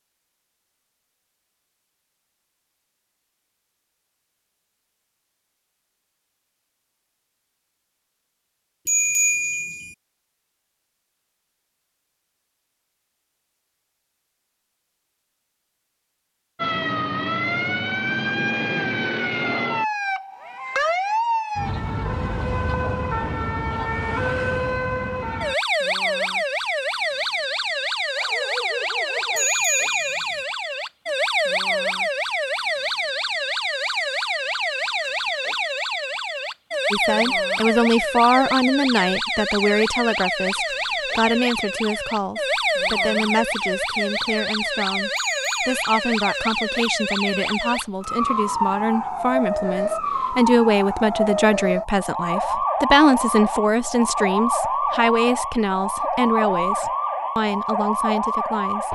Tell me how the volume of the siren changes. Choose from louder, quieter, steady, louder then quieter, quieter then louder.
steady.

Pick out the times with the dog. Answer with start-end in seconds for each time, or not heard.
28.1-29.5.